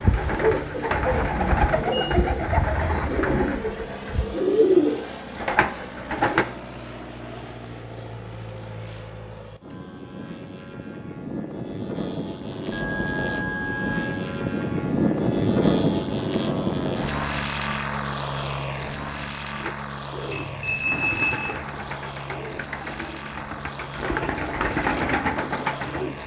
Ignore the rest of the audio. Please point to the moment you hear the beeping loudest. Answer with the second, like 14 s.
21 s.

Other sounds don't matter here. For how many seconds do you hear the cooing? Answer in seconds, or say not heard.
13 s.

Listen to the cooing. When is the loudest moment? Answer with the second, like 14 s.
5 s.